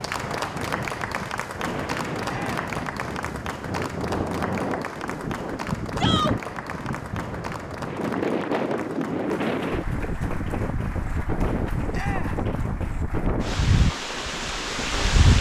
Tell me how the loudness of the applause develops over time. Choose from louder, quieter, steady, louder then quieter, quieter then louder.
quieter.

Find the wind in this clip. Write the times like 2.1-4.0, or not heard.
0.0-15.3.